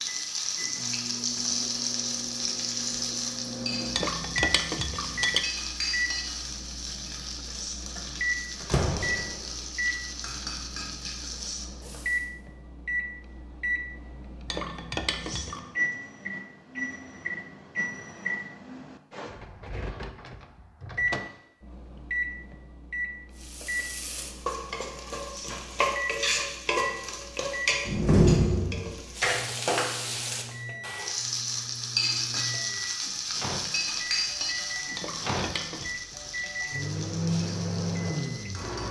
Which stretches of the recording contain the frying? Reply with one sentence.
The frying can be heard from 0.0 to 12.2 s and from 23.4 to 38.8 s.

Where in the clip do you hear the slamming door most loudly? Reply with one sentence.
The loudest moment of the slamming door is at 28 seconds.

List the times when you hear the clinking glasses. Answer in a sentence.
You can hear the clinking glasses from 3.9 to 5.5 s, from 14.4 to 15.7 s and from 35.0 to 35.9 s.